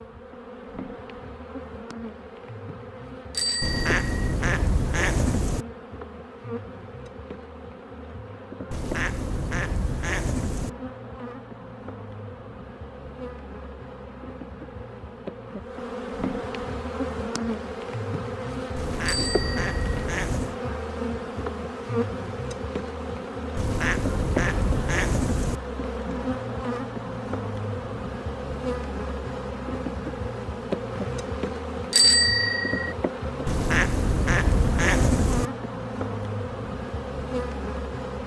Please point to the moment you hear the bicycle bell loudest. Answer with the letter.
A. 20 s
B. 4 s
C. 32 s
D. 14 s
C.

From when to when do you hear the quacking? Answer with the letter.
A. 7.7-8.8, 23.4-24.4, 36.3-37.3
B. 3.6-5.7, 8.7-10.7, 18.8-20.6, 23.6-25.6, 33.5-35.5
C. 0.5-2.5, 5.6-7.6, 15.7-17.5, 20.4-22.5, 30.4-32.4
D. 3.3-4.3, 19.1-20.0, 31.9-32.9
B.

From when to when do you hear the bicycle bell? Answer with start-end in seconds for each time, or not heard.
3.3-4.3, 19.1-20.0, 31.9-32.9.